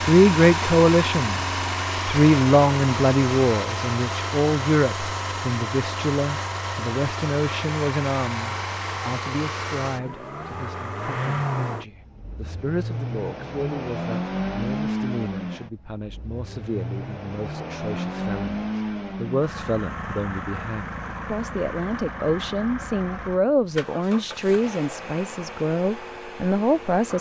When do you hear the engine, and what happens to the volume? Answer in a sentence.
You can hear the engine from 0.0 to 27.1 s, getting quieter.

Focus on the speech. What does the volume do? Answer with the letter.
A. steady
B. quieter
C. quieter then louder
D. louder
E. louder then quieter
C.